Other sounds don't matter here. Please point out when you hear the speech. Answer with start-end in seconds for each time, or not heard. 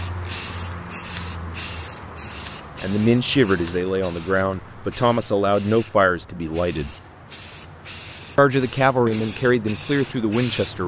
2.8-7.0, 8.3-10.8.